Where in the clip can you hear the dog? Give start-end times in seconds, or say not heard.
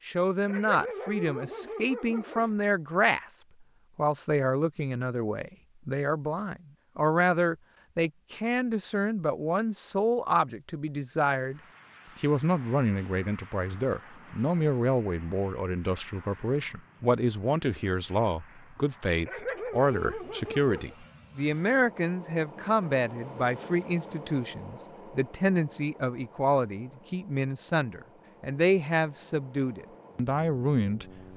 0.5-2.5, 19.2-20.9.